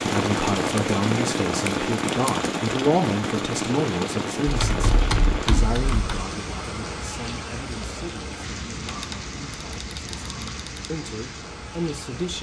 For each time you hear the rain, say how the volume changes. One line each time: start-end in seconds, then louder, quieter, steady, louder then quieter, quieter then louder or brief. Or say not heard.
0.0-12.3 quieter.